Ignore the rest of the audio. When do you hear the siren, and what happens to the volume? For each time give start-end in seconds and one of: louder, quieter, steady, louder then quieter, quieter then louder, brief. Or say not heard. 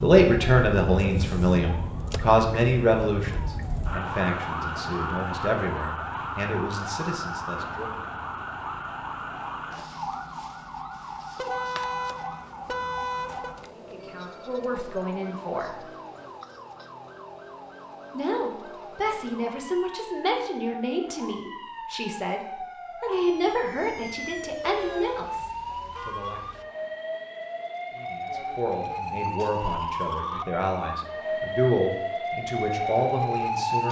0.0-33.8 quieter then louder.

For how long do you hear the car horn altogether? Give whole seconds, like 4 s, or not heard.
4 s.